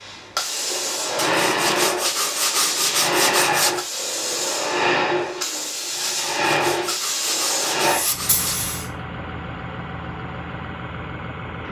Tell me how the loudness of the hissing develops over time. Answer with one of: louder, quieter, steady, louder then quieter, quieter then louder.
steady.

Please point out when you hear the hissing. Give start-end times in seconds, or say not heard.
0.0-8.9.